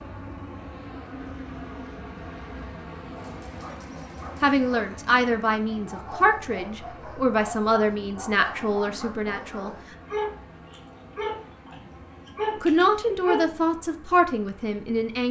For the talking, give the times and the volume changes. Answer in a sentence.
You can hear the talking from 4.4 to 9.7 s, at a steady volume; and briefly from 12.6 to 15.2 s.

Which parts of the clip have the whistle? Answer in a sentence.
You can't hear the whistle here.